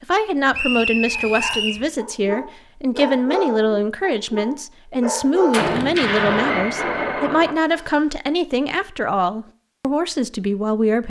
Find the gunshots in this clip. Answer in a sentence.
The gunshots can be heard from 5.5 to 7.5 s.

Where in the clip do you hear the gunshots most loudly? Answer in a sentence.
The loudest moment of the gunshots is at 6 seconds.